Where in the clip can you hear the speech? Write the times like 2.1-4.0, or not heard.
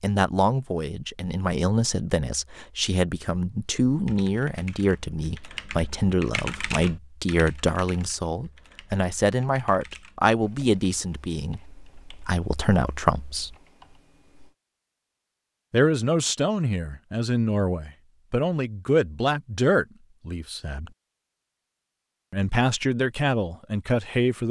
0.0-13.6, 15.7-20.9, 22.3-24.4.